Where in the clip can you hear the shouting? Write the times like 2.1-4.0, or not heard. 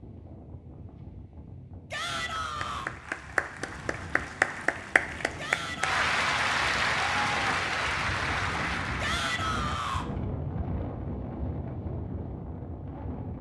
1.9-2.9, 5.3-6.0, 9.0-10.1.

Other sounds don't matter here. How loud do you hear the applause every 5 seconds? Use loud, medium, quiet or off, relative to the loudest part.
loud, loud, off.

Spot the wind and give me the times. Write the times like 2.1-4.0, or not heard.
0.0-13.3.